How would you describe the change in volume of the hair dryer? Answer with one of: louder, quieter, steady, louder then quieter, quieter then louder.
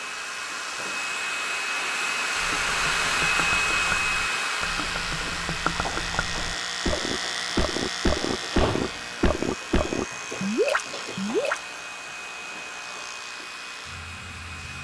quieter.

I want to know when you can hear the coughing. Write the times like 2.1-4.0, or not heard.
not heard.